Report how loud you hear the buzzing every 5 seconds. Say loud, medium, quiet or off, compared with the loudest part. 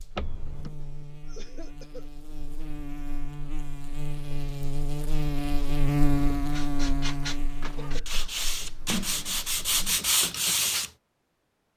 medium, loud, off.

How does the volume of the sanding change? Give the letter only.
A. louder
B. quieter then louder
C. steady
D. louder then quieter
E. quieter
A.